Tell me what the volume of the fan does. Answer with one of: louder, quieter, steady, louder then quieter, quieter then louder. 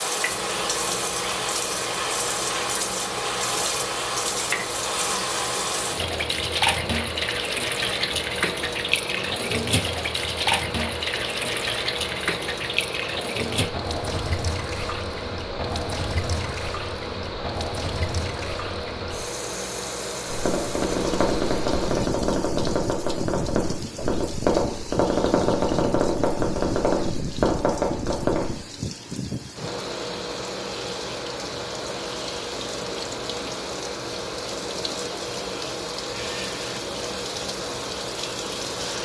steady.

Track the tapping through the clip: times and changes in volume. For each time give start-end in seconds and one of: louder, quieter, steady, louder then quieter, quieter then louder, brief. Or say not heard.
20.2-28.5 steady.